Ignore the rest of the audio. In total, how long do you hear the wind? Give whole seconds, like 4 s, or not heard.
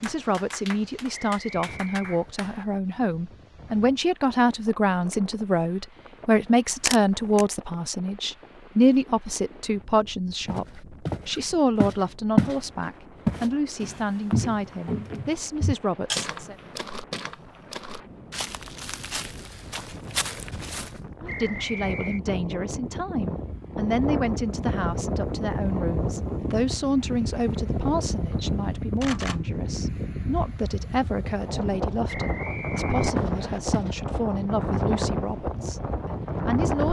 37 s.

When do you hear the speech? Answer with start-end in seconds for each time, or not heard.
0.0-16.6, 21.2-36.8.